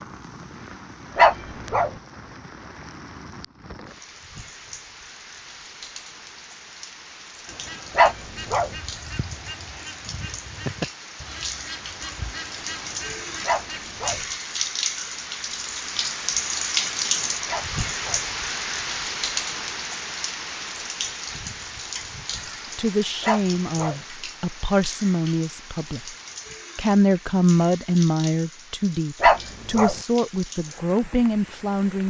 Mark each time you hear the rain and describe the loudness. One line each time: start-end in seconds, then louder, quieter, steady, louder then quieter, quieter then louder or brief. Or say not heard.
0.0-32.0 louder then quieter.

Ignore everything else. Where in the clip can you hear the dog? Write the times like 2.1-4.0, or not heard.
1.1-1.9, 8.0-8.7, 13.4-14.2, 17.4-18.2, 23.2-24.0, 29.2-29.9.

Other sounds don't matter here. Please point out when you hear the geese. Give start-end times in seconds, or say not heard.
7.5-14.2.